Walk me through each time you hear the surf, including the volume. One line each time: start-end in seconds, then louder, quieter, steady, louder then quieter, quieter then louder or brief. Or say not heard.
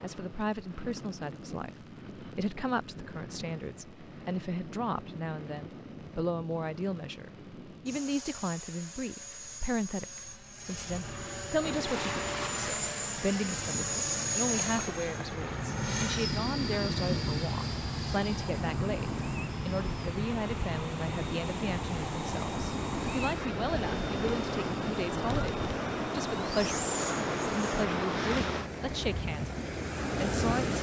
11.6-30.7 louder.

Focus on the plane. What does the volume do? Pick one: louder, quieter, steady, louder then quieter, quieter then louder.
louder then quieter.